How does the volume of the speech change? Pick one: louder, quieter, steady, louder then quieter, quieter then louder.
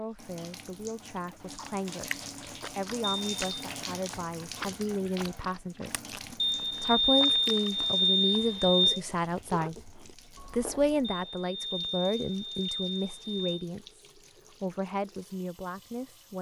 louder then quieter.